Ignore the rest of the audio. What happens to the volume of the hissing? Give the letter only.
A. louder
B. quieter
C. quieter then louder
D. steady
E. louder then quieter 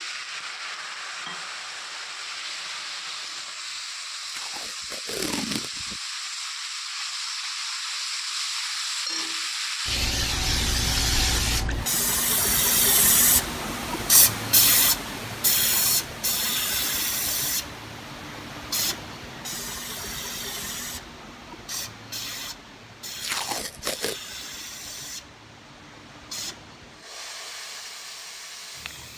E.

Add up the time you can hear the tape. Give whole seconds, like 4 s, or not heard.
3 s.